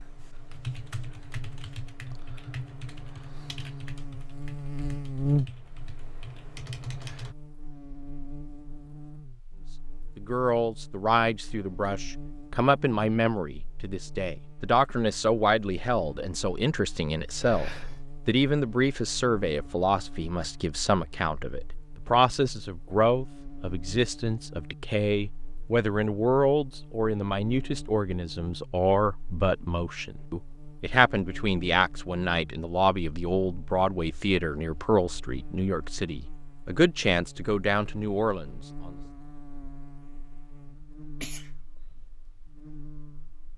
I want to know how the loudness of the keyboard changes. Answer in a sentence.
The volume of the keyboard goes down, then up.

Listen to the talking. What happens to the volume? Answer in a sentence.
The loudness of the talking stays about the same.